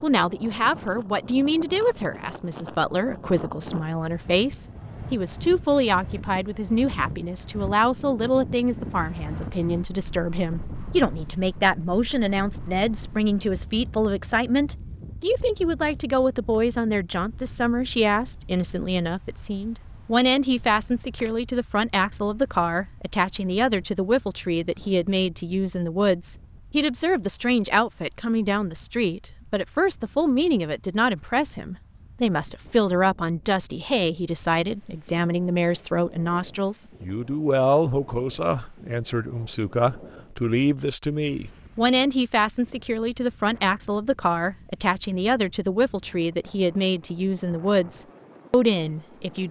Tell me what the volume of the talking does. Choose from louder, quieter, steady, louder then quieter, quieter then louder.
steady.